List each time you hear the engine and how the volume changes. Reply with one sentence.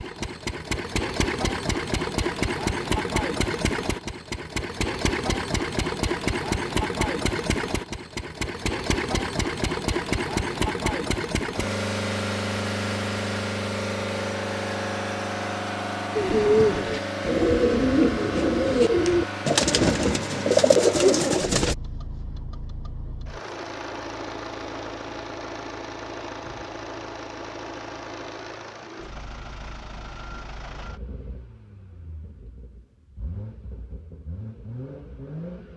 The engine can be heard from 0.0 to 35.7 s, getting quieter.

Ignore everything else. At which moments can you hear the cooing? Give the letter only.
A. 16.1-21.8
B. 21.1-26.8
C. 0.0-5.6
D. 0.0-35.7
A.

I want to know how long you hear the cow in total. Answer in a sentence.
You can't hear the cow here.